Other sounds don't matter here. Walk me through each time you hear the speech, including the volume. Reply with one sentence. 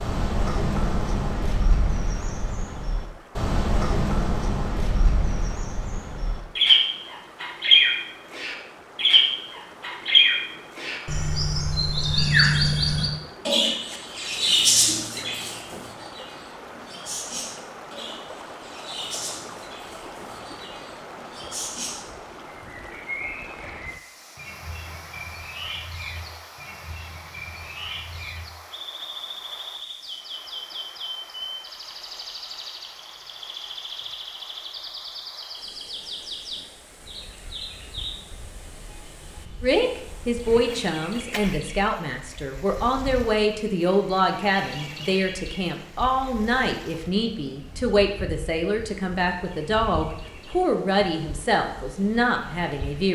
You can hear the speech from 39.6 to 53.1 s, at a steady volume.